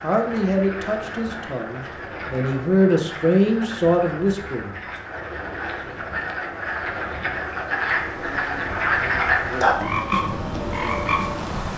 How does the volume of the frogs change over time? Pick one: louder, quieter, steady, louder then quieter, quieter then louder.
louder.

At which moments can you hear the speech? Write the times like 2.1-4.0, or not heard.
0.0-4.8.